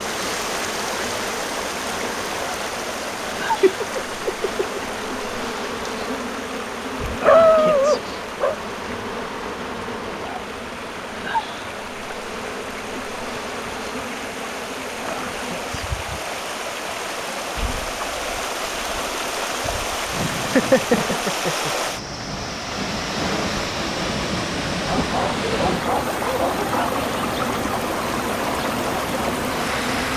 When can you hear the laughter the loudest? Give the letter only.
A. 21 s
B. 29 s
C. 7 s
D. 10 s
A.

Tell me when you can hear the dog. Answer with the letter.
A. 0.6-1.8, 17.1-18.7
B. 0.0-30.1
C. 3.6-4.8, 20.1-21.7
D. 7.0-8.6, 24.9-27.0
D.